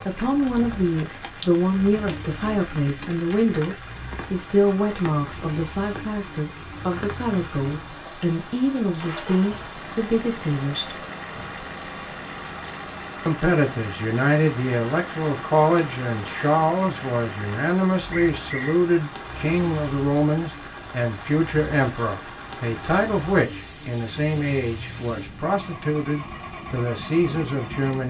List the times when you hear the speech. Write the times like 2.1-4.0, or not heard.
0.0-11.0, 13.2-28.0.